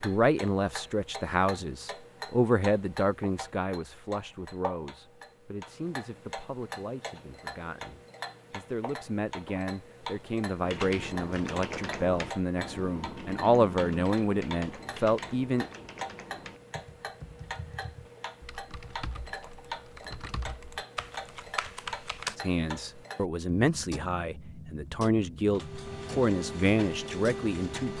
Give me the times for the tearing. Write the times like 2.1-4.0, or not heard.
not heard.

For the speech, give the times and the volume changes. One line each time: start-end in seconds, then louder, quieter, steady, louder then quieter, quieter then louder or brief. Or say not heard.
0.0-15.7 quieter then louder
22.4-27.9 quieter then louder.